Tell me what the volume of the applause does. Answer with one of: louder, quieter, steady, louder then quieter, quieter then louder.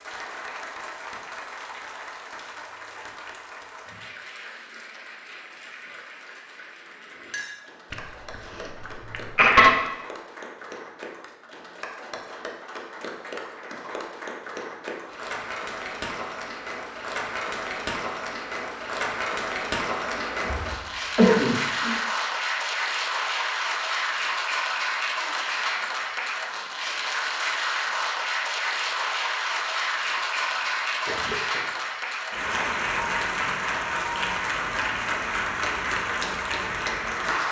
louder.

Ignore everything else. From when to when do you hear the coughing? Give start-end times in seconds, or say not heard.
7.9-9.7, 20.0-21.9, 30.1-31.7.